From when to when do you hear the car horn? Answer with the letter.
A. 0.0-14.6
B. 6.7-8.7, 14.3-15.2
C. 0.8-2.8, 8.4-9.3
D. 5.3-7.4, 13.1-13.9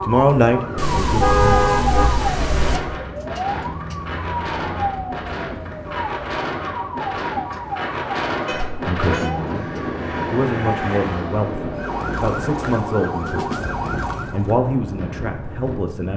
C.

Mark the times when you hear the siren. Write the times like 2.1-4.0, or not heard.
0.0-14.6.